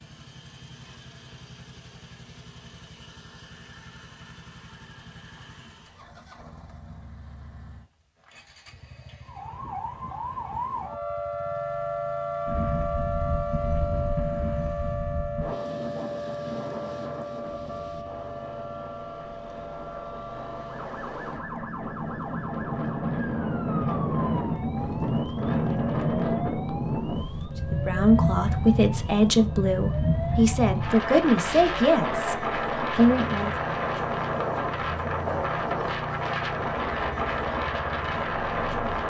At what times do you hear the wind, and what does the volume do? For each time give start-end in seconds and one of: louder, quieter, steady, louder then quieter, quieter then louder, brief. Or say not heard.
12.4-39.0 louder.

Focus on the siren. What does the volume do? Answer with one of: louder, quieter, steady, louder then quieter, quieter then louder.
quieter.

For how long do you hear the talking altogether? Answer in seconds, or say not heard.
6 s.